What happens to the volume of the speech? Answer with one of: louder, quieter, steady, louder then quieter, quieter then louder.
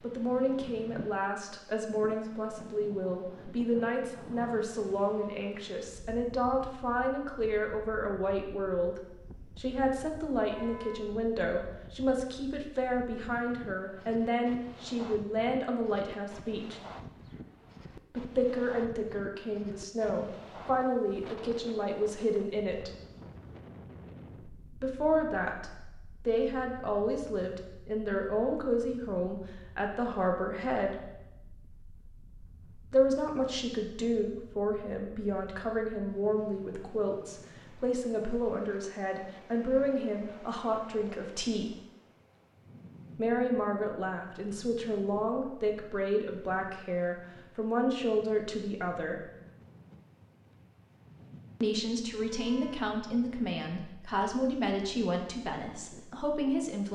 steady.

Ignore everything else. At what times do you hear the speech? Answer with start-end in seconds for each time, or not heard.
0.0-16.8, 18.1-22.9, 24.8-30.9, 32.9-41.7, 43.1-49.3, 51.6-56.9.